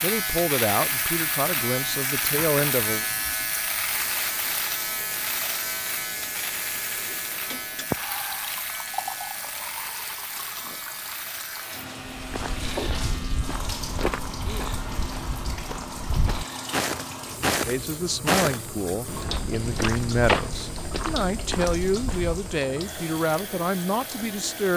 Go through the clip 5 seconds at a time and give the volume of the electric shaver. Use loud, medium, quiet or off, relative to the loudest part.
loud, medium, medium, quiet, quiet.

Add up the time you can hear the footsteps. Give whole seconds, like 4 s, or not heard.
10 s.